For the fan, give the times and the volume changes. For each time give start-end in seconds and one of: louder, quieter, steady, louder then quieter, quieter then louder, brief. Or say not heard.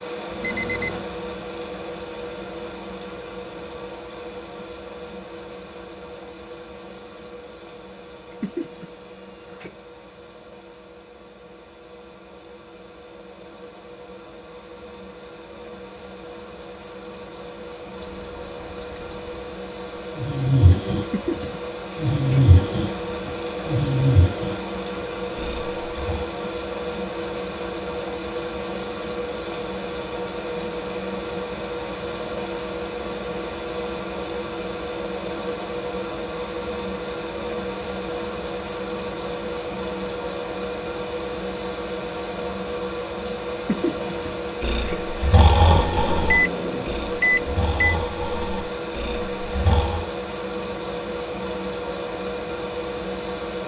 0.0-53.6 louder.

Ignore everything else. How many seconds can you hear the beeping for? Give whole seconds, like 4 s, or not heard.
4 s.